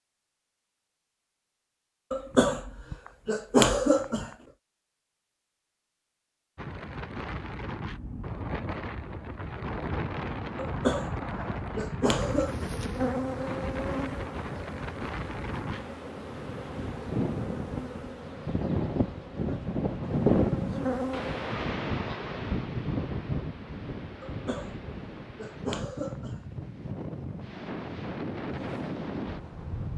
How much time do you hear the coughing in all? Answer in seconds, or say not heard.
7 s.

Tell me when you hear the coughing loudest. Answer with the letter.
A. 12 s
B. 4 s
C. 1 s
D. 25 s
B.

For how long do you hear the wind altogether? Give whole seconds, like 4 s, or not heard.
23 s.